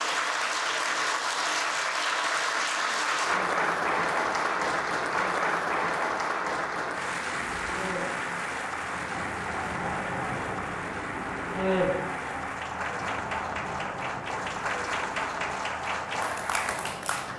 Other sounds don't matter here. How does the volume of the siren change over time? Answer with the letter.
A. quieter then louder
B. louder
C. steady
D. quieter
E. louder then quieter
E.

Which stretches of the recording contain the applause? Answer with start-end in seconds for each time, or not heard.
0.0-17.3.